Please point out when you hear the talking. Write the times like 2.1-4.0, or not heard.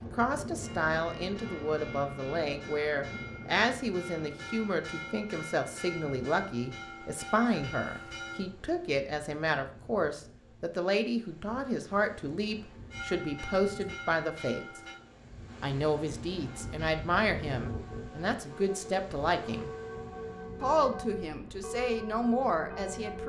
0.1-14.8, 15.6-19.7, 20.6-23.2.